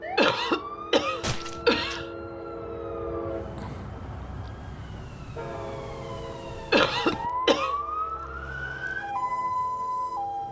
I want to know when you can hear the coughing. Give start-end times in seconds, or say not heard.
0.1-2.0, 6.7-7.8.